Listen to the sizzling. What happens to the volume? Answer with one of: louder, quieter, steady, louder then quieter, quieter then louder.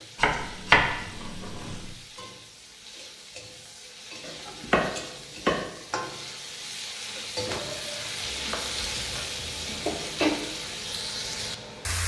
louder.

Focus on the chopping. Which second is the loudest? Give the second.
1 s.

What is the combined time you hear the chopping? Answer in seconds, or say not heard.
5 s.